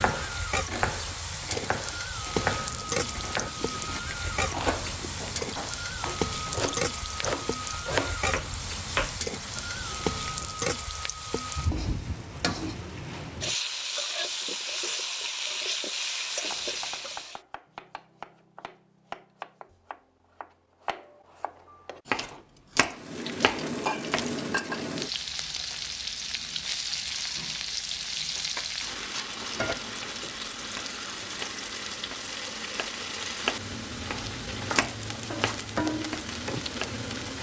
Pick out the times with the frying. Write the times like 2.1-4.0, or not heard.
0.0-17.4, 22.9-37.3.